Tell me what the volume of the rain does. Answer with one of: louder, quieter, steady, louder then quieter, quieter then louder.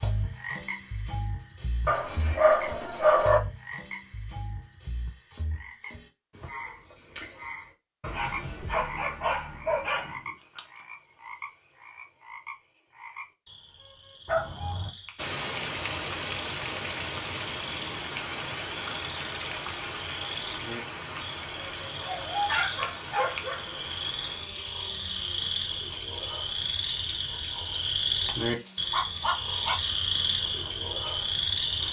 quieter.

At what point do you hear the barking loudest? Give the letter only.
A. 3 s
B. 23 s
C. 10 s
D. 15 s
A.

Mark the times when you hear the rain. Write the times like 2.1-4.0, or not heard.
15.2-31.8.